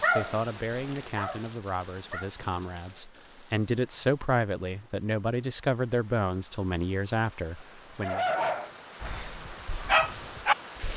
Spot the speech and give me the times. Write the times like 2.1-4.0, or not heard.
0.0-8.2.